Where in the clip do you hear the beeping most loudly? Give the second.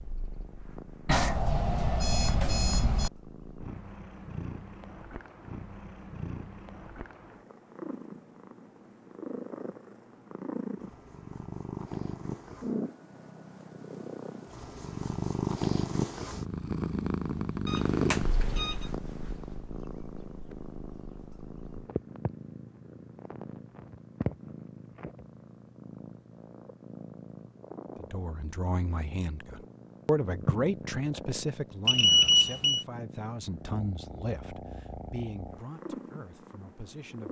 32 s.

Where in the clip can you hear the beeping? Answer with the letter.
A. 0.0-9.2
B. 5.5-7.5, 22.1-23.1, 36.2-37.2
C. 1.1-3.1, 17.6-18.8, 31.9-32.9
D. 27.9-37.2
C.